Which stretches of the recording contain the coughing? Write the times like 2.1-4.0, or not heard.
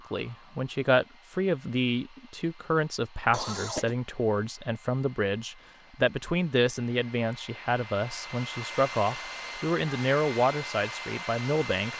3.3-4.0.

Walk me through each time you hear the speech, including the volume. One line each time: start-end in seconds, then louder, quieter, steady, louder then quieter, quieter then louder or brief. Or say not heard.
0.1-11.9 steady.